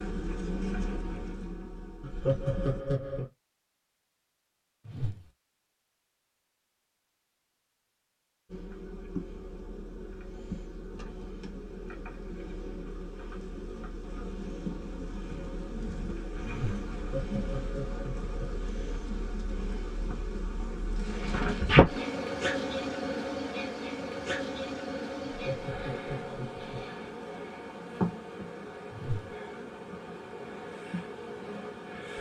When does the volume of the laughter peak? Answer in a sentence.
The volume of the laughter peaks at 2 seconds.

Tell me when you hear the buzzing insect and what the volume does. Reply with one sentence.
You can hear the buzzing insect briefly from 0.0 to 2.9 s; and from 8.4 to 32.1 s, getting louder then quieter.